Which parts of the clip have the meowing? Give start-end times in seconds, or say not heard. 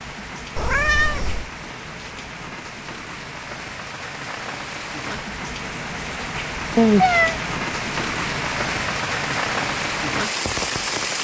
0.6-1.4, 6.8-7.4.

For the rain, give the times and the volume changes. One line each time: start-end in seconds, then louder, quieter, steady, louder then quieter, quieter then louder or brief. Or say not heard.
0.0-11.2 louder.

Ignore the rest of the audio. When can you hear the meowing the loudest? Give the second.
7 s.